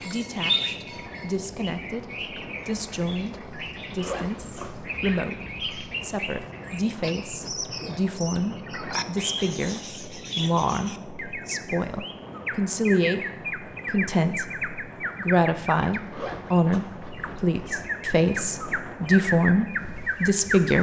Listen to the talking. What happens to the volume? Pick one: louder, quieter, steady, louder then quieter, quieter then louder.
louder.